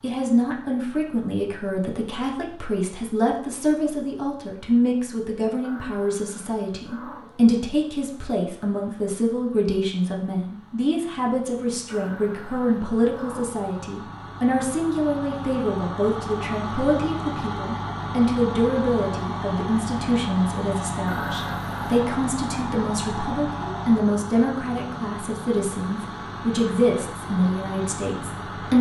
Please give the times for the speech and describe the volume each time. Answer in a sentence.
You can hear the speech from 0.0 to 28.7 s, at a steady volume.